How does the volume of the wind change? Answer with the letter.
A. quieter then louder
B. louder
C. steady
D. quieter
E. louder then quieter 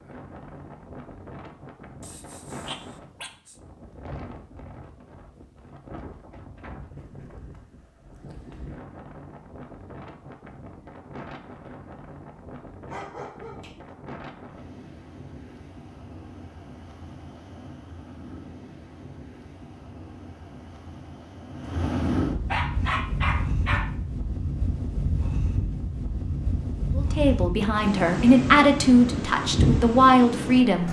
B.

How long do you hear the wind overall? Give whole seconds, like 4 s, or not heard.
31 s.